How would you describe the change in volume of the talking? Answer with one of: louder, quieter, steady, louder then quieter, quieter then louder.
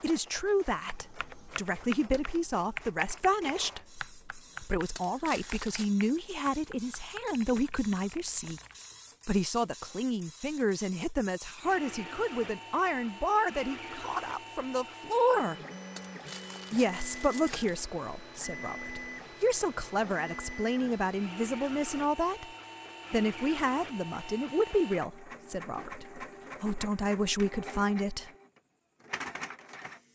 steady.